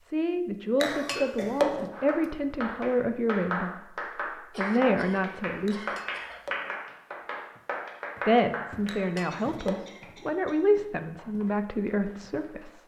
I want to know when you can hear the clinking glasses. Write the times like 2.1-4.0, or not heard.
0.8-1.9, 5.7-6.8, 8.8-9.9.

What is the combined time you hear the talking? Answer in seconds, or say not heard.
10 s.